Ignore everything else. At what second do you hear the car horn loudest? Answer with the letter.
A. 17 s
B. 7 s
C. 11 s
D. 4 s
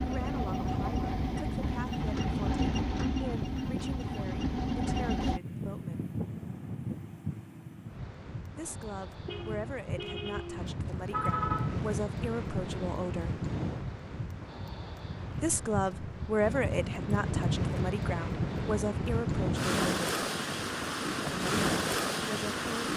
C.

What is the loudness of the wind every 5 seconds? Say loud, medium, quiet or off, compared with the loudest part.
medium, medium, medium, loud, loud.